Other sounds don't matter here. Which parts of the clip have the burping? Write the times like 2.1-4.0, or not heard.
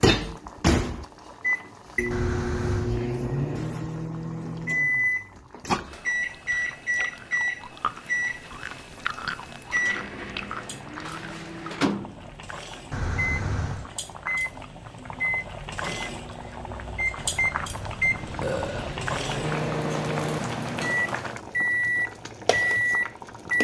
2.1-3.0, 12.9-13.9, 17.1-19.0.